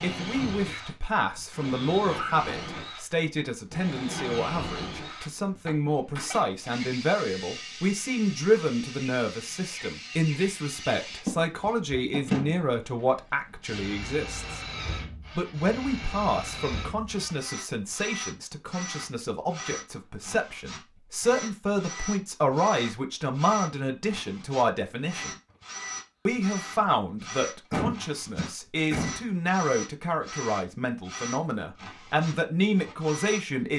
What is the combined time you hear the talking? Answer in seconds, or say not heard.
32 s.